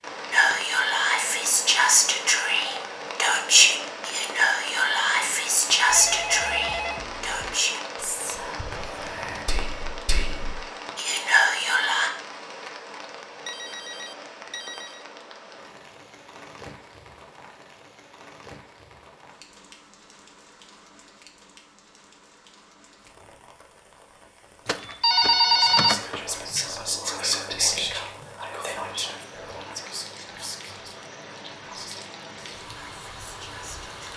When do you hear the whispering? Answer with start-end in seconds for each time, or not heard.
0.3-12.1, 25.4-34.1.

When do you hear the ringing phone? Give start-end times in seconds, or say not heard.
5.8-7.5, 13.4-15.0, 24.6-26.2.